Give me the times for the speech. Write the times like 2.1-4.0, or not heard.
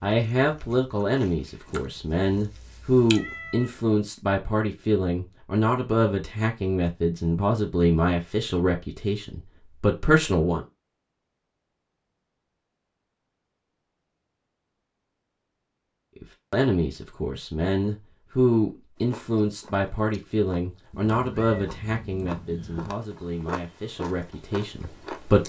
0.0-10.7, 16.2-25.4.